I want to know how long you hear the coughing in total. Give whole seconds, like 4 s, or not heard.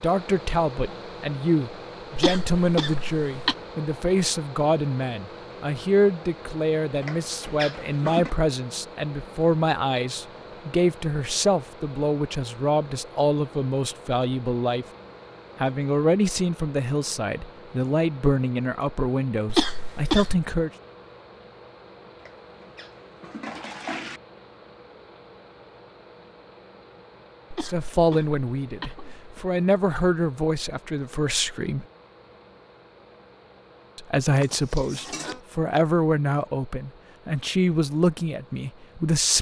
4 s.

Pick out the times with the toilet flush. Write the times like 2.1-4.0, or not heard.
7.0-8.3, 22.2-24.2, 34.2-35.4.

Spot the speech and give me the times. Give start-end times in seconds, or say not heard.
0.0-14.8, 15.6-20.7, 27.6-31.9, 34.0-39.3.